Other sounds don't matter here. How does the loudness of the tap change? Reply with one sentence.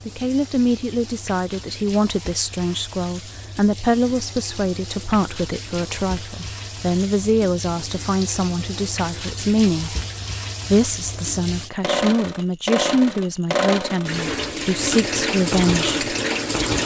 The loudness of the tap goes up.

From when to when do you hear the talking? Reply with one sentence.
You can hear the talking from 0.1 to 9.9 s and from 10.7 to 15.9 s.